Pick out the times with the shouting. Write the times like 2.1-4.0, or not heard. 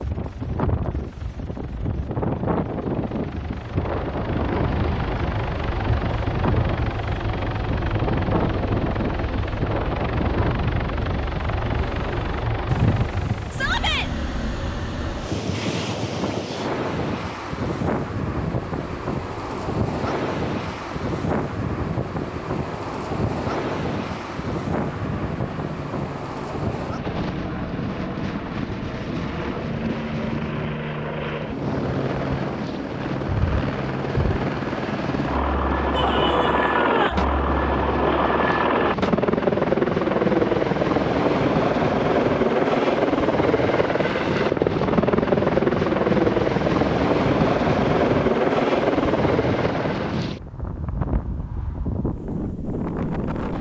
13.5-14.1, 35.9-37.2.